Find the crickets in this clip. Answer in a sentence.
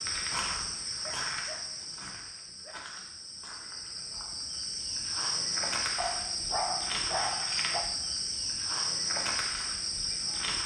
You can hear the crickets from 0.0 to 10.6 s.